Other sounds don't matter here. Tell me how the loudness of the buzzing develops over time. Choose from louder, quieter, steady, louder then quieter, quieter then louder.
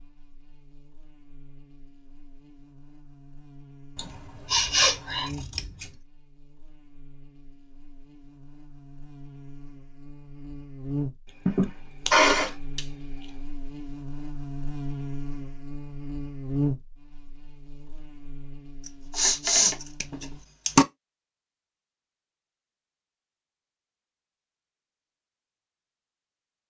louder.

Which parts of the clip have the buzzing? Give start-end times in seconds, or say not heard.
0.0-20.4.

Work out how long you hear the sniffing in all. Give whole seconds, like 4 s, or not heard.
3 s.